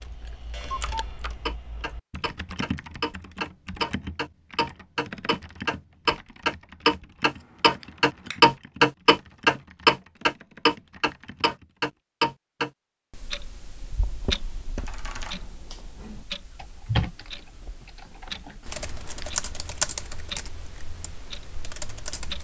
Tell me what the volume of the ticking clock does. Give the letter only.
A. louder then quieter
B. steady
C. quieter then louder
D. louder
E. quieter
A.